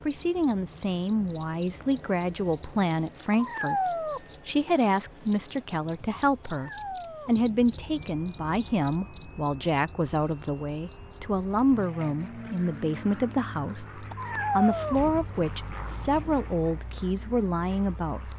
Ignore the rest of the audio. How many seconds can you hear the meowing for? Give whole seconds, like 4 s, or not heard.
3 s.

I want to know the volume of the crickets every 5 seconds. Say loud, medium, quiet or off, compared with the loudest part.
loud, loud, medium, quiet.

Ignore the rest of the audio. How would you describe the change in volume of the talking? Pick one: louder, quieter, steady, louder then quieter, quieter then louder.
steady.